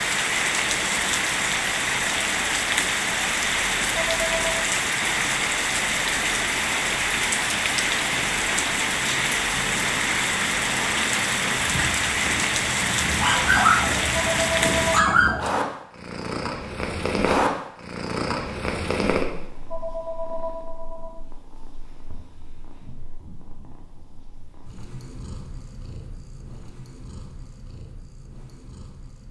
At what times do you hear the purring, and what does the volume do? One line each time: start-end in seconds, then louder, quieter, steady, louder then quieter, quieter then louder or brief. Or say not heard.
0.0-29.2 louder then quieter.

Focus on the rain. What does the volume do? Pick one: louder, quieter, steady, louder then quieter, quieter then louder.
steady.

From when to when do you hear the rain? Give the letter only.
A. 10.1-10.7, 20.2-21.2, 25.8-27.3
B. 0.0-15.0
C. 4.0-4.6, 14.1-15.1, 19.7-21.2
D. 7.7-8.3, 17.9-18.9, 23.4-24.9
B.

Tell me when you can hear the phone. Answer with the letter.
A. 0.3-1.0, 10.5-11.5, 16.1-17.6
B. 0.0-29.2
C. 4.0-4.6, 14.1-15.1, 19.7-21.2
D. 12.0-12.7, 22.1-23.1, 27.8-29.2
C.